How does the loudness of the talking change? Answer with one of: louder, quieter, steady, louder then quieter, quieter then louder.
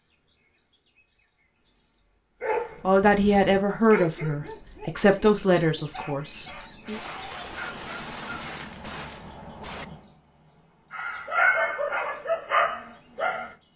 quieter.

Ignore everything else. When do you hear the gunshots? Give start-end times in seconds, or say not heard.
6.8-9.8.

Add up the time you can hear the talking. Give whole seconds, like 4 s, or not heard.
4 s.